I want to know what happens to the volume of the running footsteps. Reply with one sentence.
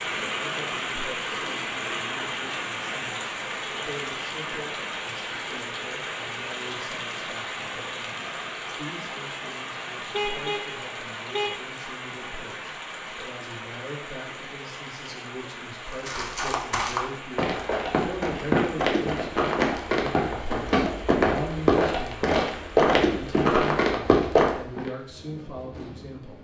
The volume of the running footsteps goes up.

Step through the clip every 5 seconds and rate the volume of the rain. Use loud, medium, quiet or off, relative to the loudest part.
loud, loud, medium, medium, quiet, quiet.